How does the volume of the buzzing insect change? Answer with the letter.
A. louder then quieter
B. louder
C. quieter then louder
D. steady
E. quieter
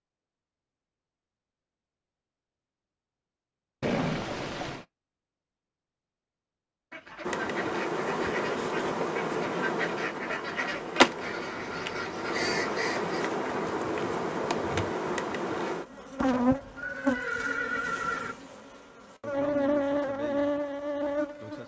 D.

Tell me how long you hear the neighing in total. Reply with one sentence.
You can hear the neighing for 3 seconds altogether.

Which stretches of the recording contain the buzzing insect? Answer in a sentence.
The buzzing insect can be heard from 7.2 to 21.6 s.